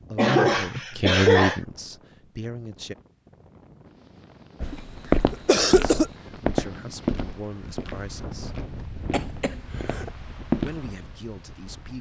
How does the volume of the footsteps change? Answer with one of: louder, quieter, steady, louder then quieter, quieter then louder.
quieter.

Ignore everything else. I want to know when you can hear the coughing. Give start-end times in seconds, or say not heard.
0.1-1.6, 4.7-6.1, 9.0-10.1.